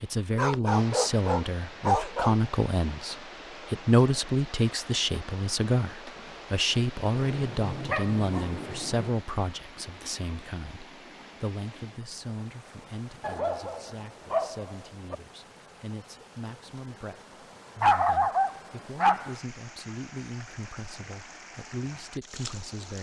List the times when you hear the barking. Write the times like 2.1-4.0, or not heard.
0.3-2.4, 7.2-9.1, 13.2-15.2, 17.8-19.4.